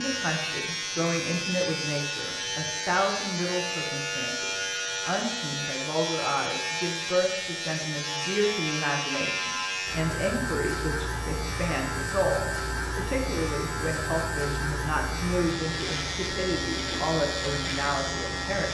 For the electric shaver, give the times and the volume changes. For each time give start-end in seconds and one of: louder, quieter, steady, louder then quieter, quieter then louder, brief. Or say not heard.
0.0-18.7 steady.